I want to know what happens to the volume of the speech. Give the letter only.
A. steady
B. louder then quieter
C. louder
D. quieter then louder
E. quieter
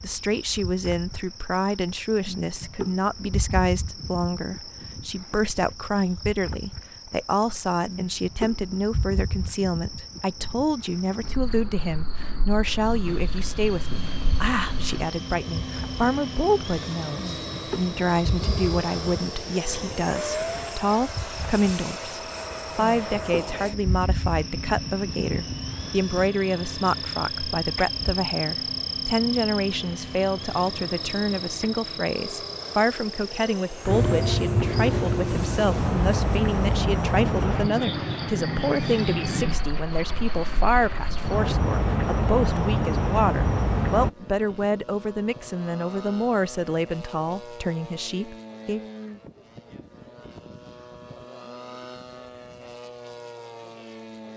A.